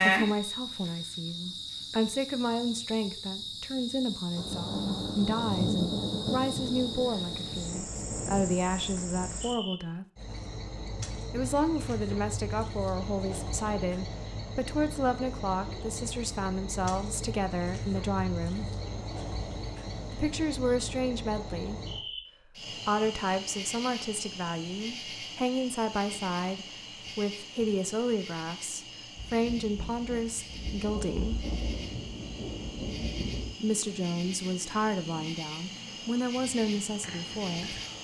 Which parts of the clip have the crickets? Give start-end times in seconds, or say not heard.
0.0-37.9.